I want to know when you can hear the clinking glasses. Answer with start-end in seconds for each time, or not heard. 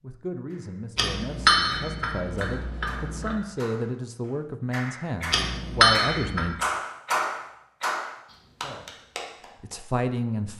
0.9-3.4, 5.3-6.5.